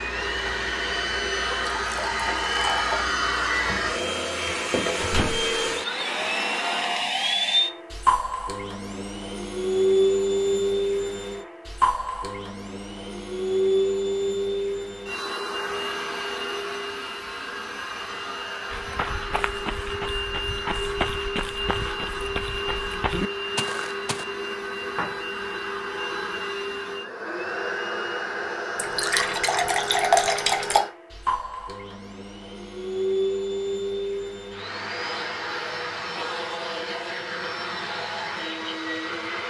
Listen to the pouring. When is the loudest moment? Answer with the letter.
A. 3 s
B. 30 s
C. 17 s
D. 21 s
B.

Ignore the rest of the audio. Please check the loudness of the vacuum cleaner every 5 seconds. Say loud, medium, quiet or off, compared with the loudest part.
loud, loud, loud, medium, medium, medium, medium, medium.